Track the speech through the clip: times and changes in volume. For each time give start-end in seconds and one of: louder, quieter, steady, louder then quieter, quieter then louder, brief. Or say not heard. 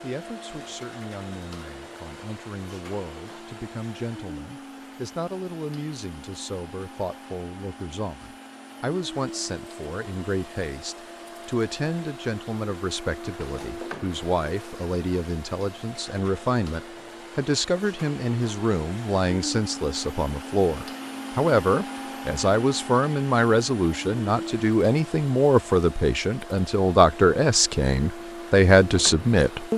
0.0-29.7 louder.